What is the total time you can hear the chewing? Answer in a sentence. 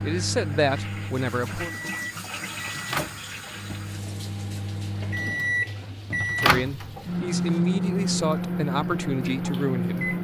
The chewing can't be heard in this clip.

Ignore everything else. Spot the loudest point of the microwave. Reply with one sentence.
The loudest moment of the microwave is at 8 seconds.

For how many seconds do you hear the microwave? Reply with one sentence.
The microwave can be heard for 10 seconds in total.